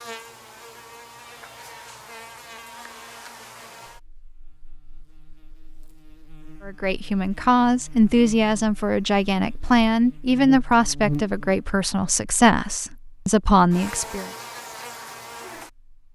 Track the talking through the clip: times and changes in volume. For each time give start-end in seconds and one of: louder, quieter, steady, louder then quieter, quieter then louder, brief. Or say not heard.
6.7-14.3 steady.